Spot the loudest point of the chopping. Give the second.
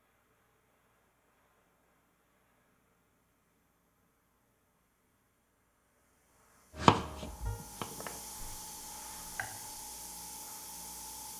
7 s.